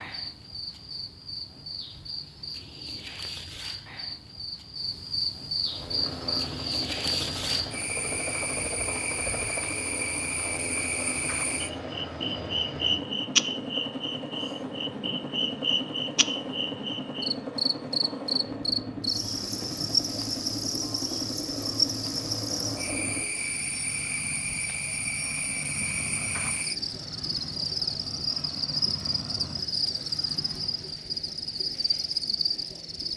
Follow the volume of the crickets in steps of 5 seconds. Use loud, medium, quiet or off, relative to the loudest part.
medium, loud, loud, loud, loud, loud, loud.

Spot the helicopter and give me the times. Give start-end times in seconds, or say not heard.
5.6-31.1.